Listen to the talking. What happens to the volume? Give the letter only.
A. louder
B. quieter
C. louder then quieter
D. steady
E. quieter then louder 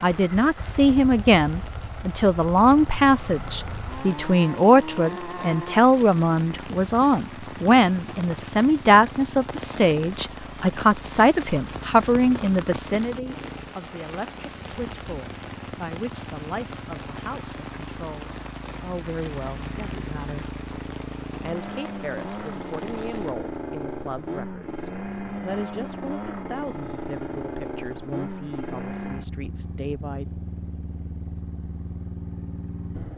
B.